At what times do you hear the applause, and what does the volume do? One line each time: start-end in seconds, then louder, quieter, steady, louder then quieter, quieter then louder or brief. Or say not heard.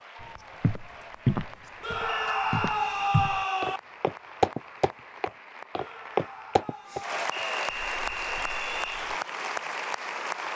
0.0-10.5 louder.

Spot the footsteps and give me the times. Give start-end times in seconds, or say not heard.
0.2-9.2.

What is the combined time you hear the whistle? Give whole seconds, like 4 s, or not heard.
3 s.